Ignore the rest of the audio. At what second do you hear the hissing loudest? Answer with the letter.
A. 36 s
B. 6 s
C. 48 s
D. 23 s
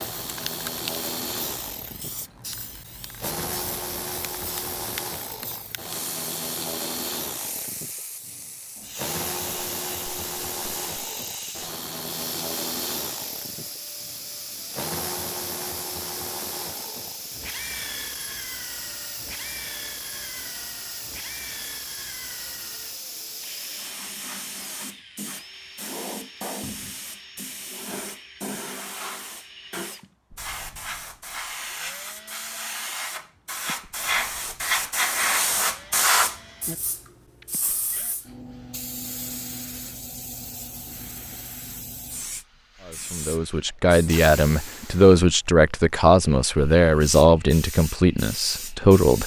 A.